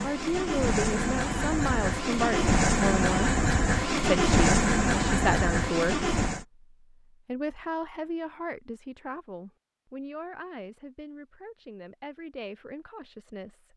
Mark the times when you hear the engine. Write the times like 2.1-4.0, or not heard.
0.0-6.5.